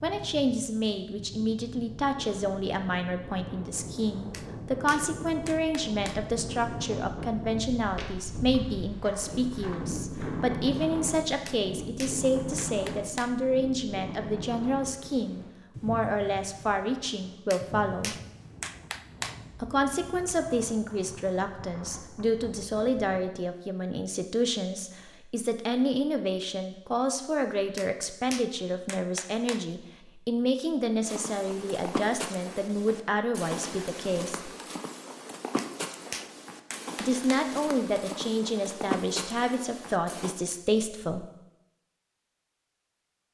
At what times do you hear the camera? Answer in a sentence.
You can't hear the camera here.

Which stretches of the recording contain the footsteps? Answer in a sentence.
You can hear the footsteps from 7.8 to 10.8 s and from 31.1 to 40.4 s.